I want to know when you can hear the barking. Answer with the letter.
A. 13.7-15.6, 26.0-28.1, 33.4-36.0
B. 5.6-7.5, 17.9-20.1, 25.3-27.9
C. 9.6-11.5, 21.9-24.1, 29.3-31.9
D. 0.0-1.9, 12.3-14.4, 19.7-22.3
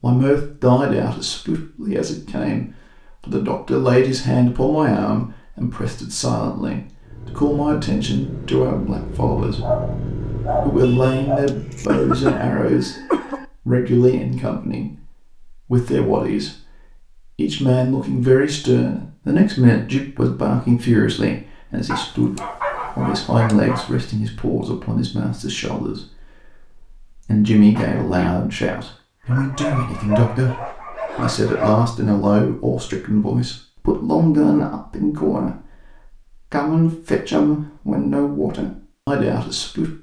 C.